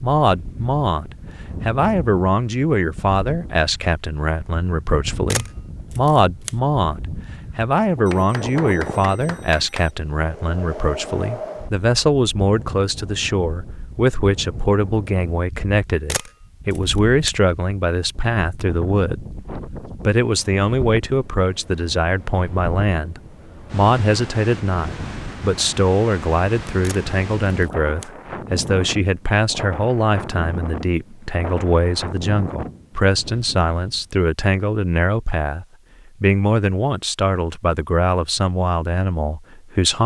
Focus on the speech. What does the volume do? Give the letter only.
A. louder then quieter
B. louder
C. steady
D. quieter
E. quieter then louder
C.